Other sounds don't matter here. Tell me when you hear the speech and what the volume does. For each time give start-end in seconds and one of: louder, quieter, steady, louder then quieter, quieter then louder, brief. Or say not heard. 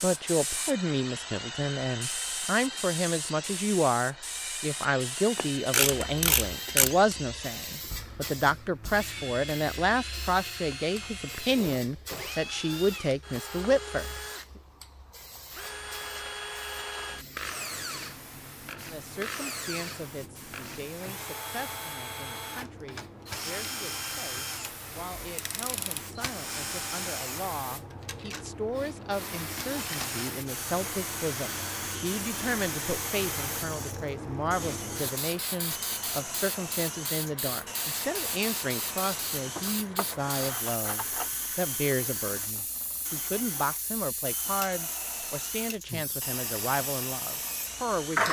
0.0-14.2 steady
18.9-48.2 louder.